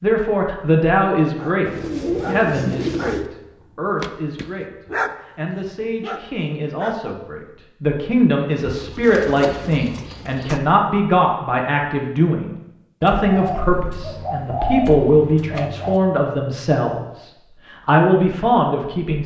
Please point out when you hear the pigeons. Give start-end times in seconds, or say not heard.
1.6-3.3, 8.6-10.6, 13.0-16.0.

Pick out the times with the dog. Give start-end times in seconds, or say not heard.
1.2-7.2.